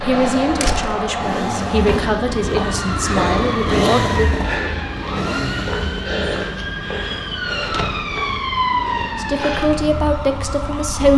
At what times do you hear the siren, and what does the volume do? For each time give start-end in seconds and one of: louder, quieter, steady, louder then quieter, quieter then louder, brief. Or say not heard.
0.0-11.1 steady.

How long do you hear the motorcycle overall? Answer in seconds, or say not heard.
11 s.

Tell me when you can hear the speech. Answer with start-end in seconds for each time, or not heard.
0.0-4.2, 9.2-11.1.